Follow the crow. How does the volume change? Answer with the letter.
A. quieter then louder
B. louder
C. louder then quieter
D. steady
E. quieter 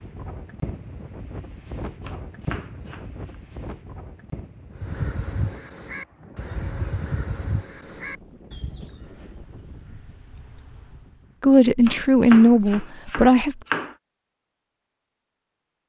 E.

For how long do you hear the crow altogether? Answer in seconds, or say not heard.
5 s.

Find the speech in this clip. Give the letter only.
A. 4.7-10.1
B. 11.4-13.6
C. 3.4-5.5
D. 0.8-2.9
B.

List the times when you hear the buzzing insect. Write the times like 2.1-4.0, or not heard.
not heard.